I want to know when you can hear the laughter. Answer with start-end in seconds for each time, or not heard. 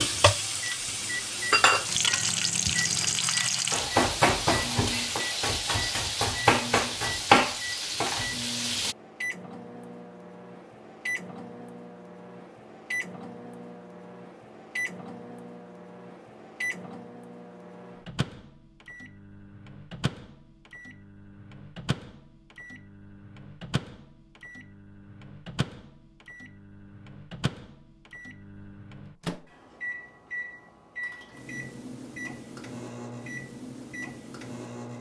not heard.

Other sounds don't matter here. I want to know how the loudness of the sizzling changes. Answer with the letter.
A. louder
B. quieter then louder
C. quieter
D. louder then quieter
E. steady
E.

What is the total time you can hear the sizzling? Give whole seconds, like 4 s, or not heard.
9 s.